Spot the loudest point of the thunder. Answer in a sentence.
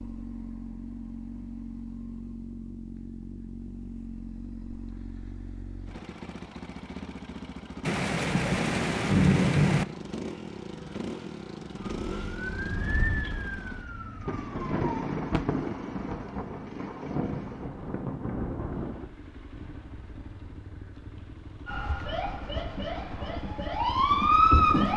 The loudest moment of the thunder is at 9 seconds.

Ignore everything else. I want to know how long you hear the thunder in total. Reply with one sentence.
You can hear the thunder for 7 seconds altogether.